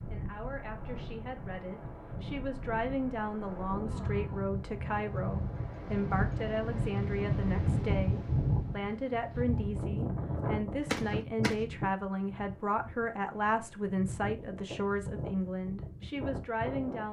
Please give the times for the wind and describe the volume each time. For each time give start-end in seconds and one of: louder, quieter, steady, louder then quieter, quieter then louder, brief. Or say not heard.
0.0-17.0 louder then quieter.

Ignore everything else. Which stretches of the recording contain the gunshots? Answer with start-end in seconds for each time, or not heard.
10.8-11.6.